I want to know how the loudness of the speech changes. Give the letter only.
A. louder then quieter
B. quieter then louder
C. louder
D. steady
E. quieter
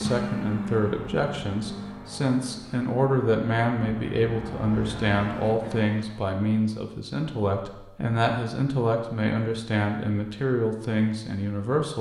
D.